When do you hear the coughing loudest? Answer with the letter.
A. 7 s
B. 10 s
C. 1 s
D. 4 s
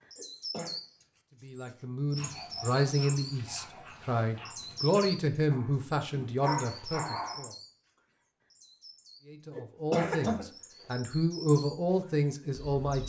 B.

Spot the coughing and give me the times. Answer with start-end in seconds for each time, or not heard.
0.1-0.8, 9.6-10.4.